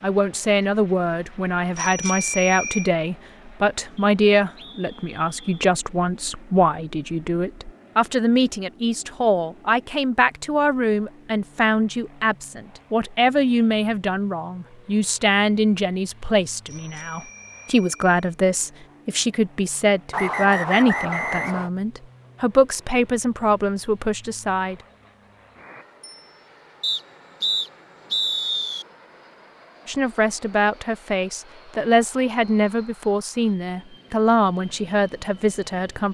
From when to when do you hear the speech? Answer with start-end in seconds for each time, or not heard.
0.0-24.8, 29.9-36.0.